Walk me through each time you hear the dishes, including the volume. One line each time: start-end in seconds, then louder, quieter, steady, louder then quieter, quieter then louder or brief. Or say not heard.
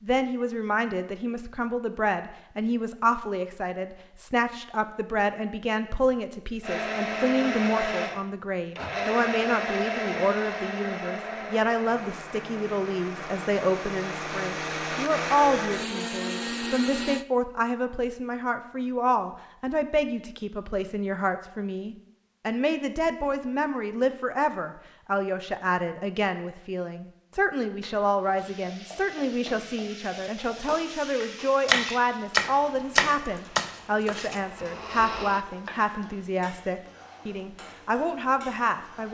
not heard.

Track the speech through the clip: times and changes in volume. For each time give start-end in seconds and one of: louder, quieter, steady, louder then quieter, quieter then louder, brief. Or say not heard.
0.0-39.0 steady.